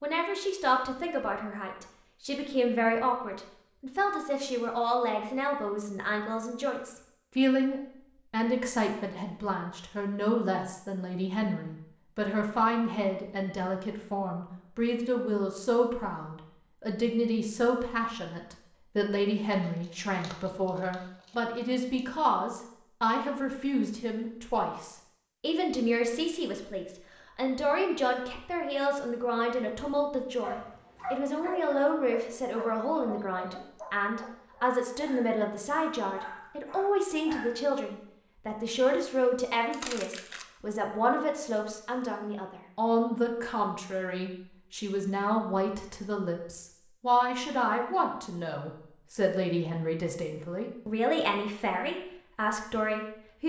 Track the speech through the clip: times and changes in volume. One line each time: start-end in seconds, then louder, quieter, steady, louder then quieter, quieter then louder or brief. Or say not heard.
0.0-53.4 steady.